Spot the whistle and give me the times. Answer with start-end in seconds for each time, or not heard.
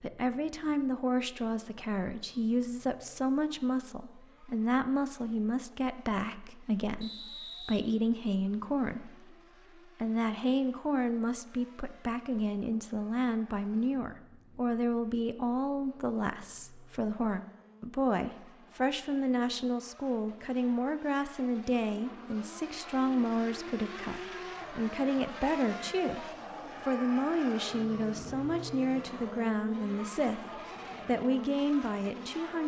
7.0-7.8.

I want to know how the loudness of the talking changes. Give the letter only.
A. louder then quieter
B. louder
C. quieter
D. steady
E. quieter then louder
D.